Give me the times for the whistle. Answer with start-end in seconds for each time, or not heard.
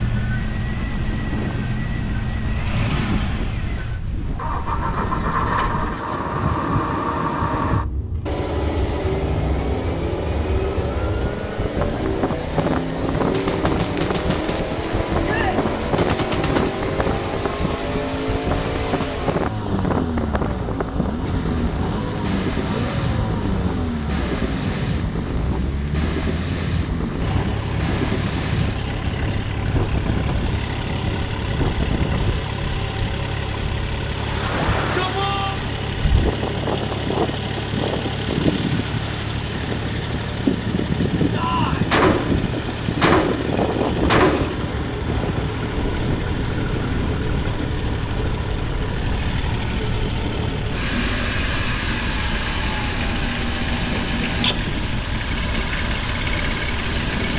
not heard.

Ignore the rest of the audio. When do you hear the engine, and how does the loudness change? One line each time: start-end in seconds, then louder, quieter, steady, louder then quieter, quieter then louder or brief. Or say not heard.
0.0-57.3 steady.